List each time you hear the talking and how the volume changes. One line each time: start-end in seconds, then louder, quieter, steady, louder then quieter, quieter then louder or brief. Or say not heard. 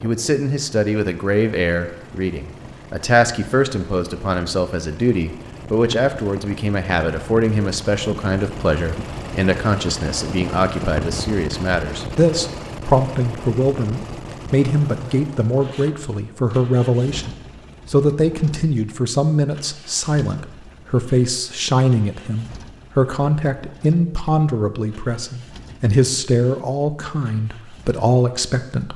0.0-28.9 steady.